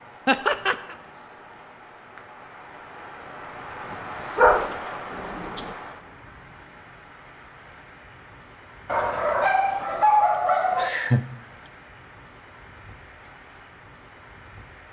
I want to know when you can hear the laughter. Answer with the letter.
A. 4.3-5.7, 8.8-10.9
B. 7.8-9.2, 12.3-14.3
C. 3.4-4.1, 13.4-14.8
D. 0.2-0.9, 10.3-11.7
D.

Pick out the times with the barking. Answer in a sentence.
You can hear the barking from 4.3 to 5.7 s and from 8.8 to 10.9 s.